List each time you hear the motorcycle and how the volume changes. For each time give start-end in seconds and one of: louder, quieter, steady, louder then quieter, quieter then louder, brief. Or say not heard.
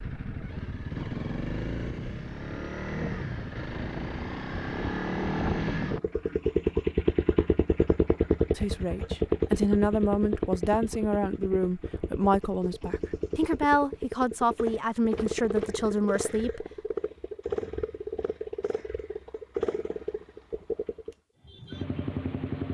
0.0-22.6 louder then quieter.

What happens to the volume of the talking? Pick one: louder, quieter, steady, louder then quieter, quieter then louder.
steady.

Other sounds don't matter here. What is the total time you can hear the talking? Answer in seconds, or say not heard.
8 s.